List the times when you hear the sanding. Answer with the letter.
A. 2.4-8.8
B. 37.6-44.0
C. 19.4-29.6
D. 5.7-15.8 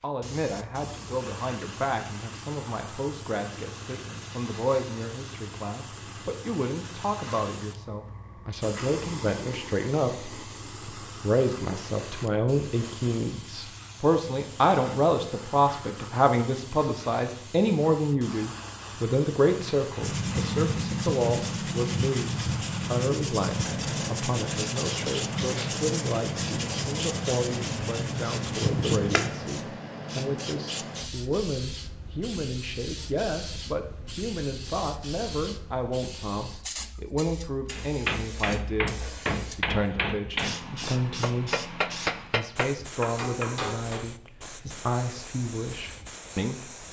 C.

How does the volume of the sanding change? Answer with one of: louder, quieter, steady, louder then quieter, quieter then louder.
steady.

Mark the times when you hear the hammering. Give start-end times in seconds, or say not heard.
37.6-44.0.